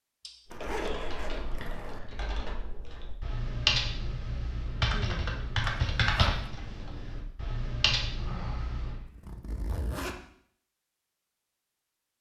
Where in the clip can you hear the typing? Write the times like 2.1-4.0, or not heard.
0.5-9.0.